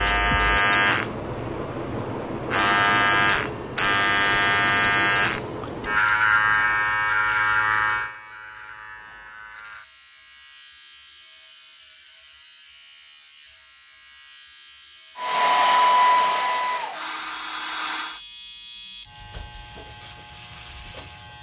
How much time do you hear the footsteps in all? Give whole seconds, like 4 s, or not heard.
not heard.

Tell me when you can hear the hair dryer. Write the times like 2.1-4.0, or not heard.
15.2-18.2.